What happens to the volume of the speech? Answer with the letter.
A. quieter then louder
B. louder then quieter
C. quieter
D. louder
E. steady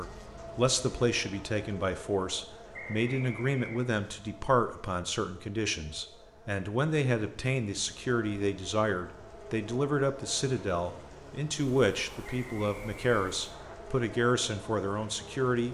E.